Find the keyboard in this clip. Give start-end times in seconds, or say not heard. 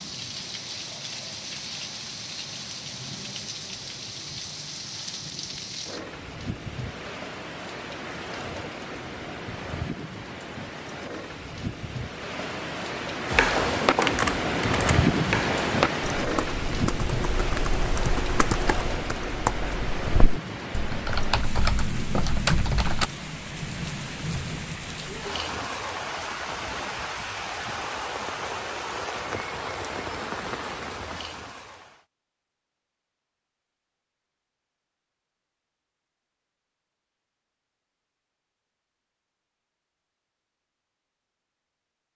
13.2-23.1.